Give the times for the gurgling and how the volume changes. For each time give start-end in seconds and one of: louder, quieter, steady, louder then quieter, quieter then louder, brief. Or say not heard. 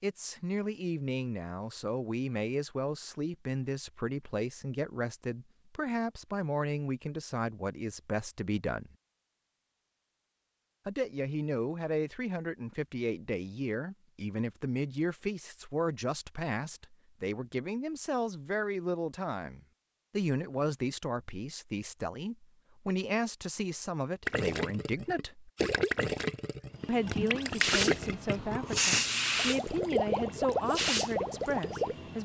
24.2-31.9 steady.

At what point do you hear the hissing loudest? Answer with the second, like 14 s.
29 s.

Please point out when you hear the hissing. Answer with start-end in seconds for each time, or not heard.
26.8-32.2.